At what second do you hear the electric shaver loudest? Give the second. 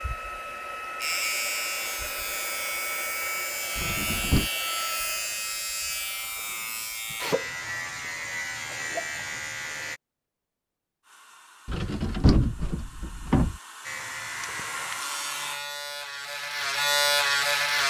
17 s.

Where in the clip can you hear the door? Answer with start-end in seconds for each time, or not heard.
3.8-4.5, 11.7-13.6.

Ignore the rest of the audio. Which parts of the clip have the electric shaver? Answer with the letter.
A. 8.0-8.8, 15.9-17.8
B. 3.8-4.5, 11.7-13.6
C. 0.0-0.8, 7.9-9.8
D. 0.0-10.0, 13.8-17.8
D.